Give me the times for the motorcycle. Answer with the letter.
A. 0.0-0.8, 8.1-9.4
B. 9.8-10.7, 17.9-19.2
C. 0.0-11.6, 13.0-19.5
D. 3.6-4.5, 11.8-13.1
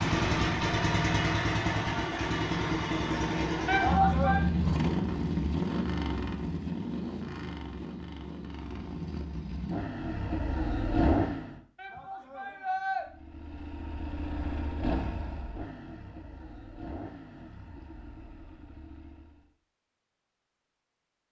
C.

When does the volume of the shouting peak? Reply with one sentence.
The volume of the shouting peaks at 4 seconds.